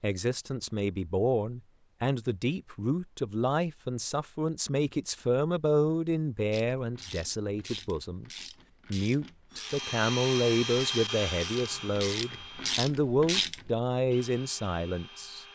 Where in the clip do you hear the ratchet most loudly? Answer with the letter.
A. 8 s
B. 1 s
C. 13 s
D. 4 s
C.